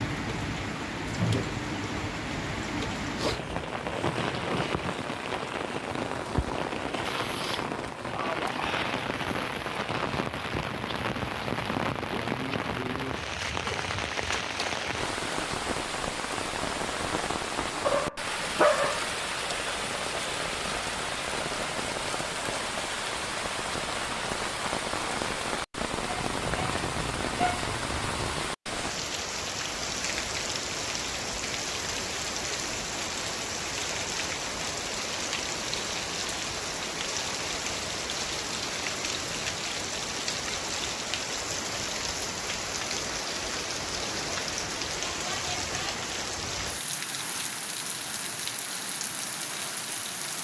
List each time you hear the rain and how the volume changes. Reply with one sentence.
You can hear the rain from 0.0 to 50.3 s, at a steady volume.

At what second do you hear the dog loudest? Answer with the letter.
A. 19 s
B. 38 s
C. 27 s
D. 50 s
A.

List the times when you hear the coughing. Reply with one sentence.
You can't hear the coughing here.